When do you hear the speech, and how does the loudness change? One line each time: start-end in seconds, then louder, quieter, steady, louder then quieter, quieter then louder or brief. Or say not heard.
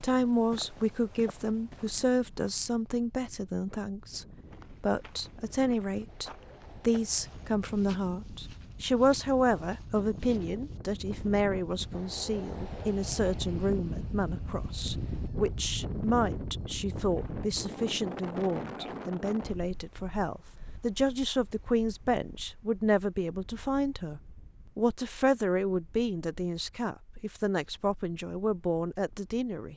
0.0-29.7 steady.